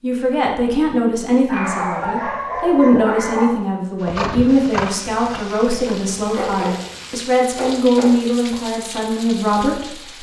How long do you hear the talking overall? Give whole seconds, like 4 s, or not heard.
10 s.